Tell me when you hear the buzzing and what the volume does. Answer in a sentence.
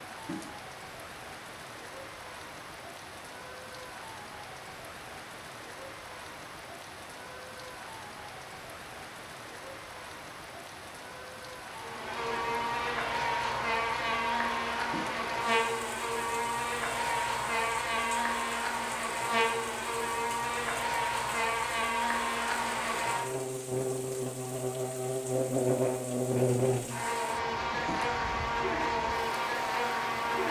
You can hear the buzzing from 11.7 to 30.4 s, at a steady volume.